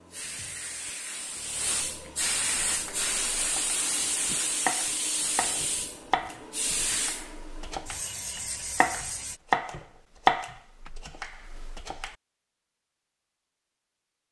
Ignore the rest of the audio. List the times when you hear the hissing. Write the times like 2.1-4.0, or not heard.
0.0-9.4.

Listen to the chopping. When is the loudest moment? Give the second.
10 s.